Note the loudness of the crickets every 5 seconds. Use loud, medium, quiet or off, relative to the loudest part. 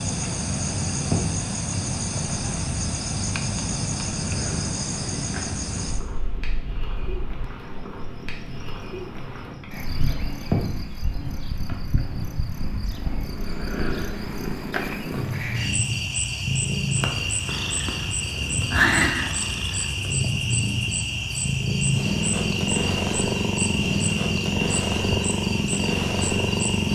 loud, medium, medium, loud, loud, loud.